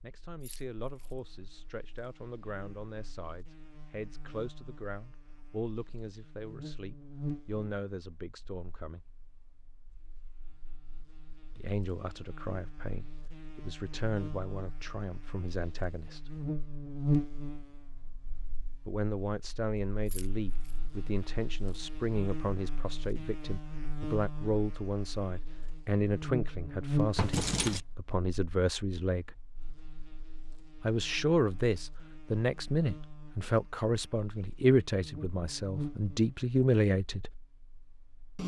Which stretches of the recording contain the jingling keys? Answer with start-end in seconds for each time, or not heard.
0.4-1.1, 20.1-20.8, 27.1-27.8.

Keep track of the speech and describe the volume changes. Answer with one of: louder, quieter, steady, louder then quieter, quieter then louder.
louder.